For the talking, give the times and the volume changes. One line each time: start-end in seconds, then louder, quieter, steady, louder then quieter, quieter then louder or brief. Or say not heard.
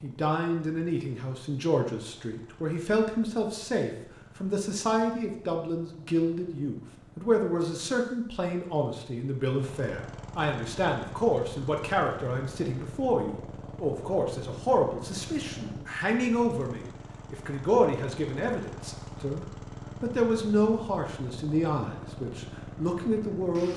0.0-23.7 steady.